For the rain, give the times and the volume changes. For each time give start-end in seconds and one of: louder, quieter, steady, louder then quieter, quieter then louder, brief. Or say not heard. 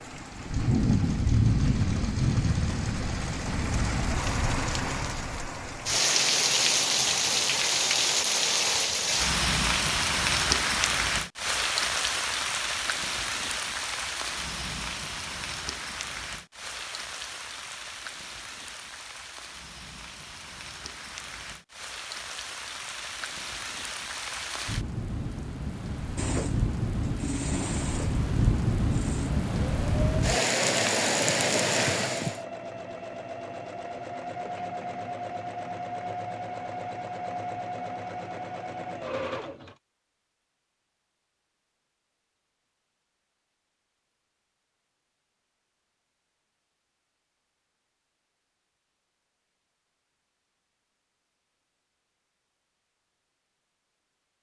0.0-32.4 quieter then louder.